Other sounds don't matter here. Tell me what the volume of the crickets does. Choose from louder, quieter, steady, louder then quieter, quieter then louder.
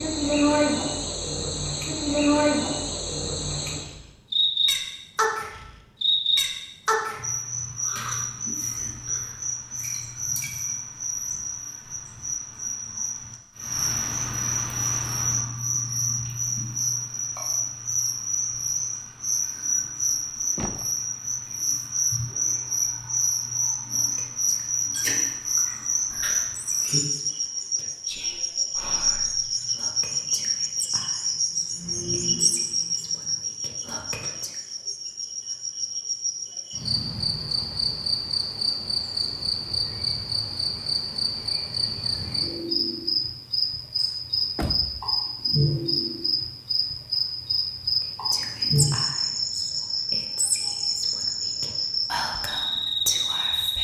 steady.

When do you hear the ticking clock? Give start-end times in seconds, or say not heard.
not heard.